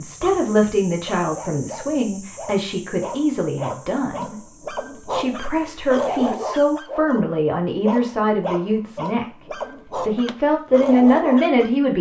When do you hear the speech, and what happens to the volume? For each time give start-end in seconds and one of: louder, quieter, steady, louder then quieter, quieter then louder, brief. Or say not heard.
0.0-4.4 quieter
5.1-9.2 steady
10.1-11.9 brief.